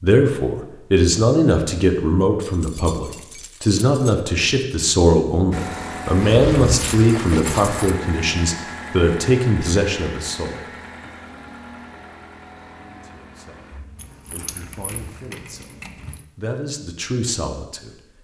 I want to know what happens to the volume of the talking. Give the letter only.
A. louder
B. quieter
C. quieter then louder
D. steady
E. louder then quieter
B.